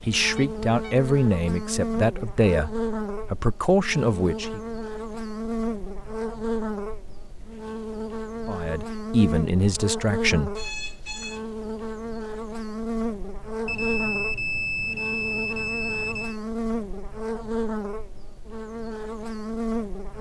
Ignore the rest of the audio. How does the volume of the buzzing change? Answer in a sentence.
The volume of the buzzing stays about the same.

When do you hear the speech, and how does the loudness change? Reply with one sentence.
You can hear the speech from 0.1 to 4.6 s, getting quieter then louder; and briefly from 8.4 to 10.5 s.